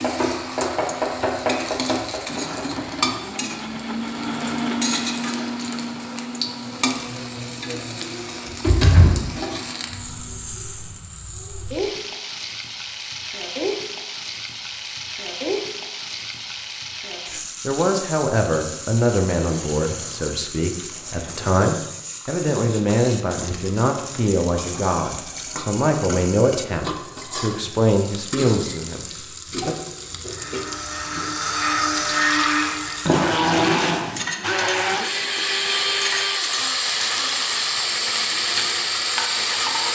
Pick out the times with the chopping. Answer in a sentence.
You can hear the chopping from 0.0 to 3.0 s.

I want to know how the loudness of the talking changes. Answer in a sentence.
The loudness of the talking stays about the same.